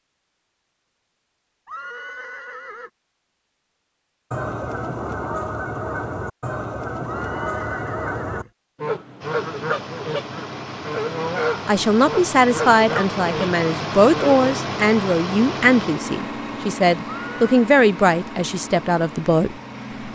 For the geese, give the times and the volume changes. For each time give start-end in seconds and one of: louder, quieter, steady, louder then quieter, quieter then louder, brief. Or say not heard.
4.3-14.4 steady.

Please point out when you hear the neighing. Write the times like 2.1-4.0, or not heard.
1.6-2.9, 7.0-8.5, 17.1-17.6.